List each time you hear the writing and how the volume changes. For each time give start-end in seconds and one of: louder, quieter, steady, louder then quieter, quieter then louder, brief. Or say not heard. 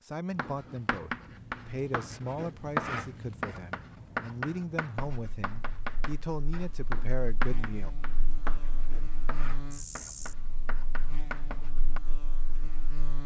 0.3-12.0 quieter.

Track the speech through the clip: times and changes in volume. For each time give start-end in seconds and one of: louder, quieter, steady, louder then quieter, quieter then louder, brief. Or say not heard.
0.0-7.9 steady.